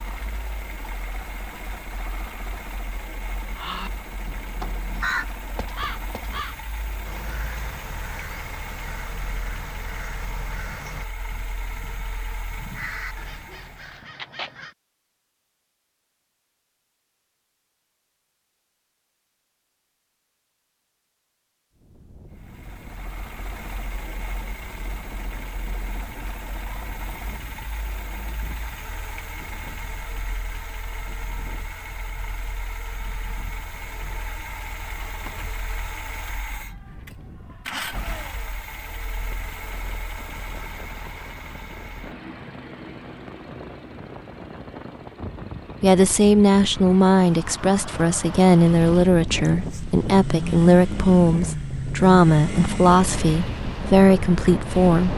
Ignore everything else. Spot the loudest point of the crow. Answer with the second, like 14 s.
5 s.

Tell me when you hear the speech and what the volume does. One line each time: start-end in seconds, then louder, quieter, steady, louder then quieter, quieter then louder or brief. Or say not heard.
45.8-55.1 steady.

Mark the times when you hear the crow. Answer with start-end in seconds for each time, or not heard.
3.4-14.8.